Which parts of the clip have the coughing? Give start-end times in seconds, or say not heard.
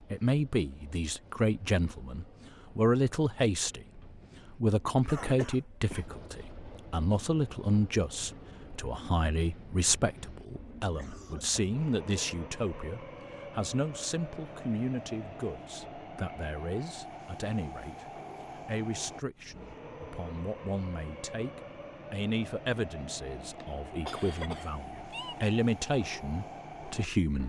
5.0-6.1, 10.9-11.8, 23.4-25.4.